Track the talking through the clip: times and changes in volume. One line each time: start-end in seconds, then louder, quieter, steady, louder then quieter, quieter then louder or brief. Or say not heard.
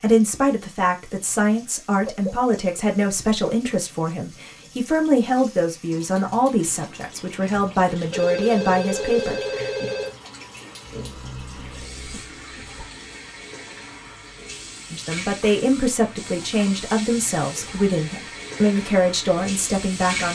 0.0-9.7 steady
14.9-20.3 steady.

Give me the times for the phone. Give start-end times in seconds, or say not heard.
7.3-10.2.